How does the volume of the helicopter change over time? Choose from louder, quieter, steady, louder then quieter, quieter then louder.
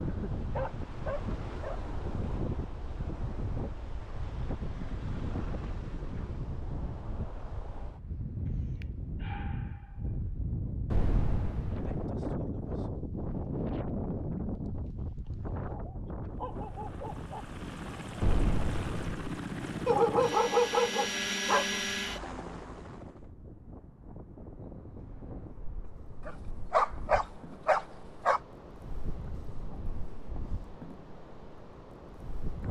louder.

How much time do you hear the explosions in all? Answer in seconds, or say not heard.
2 s.